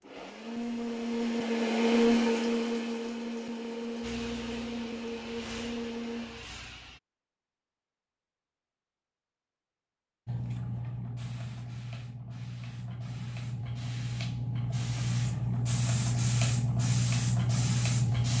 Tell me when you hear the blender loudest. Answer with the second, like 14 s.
2 s.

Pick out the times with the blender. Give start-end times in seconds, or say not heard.
0.0-6.5.